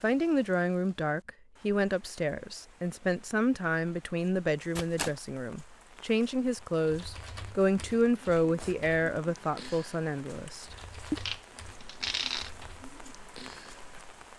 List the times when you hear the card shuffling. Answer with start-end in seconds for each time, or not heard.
4.8-5.2, 11.2-12.5.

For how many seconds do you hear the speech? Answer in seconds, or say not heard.
11 s.